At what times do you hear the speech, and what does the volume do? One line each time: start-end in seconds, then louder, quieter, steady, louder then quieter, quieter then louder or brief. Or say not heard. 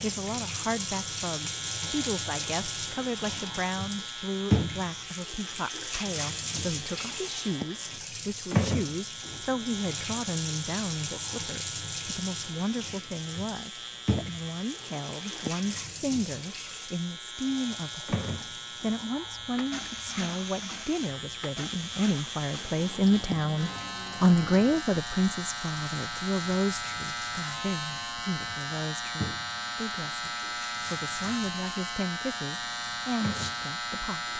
0.0-34.2 louder then quieter.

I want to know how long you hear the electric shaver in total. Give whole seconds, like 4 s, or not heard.
34 s.